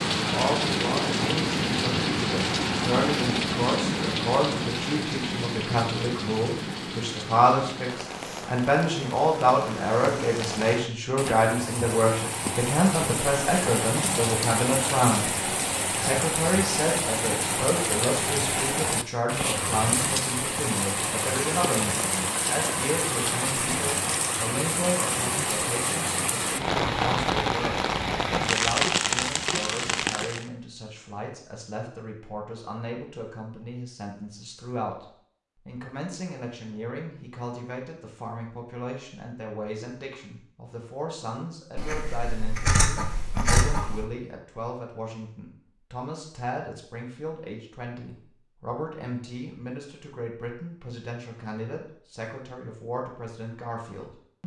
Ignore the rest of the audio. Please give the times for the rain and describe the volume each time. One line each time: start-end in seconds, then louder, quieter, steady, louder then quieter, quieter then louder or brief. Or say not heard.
0.0-30.5 quieter then louder.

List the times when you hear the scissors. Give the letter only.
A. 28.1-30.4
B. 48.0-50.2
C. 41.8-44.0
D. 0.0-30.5
C.